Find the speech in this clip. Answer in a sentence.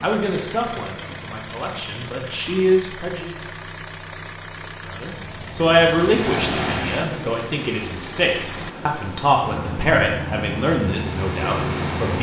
You can hear the speech from 0.0 to 3.4 s and from 4.9 to 12.1 s.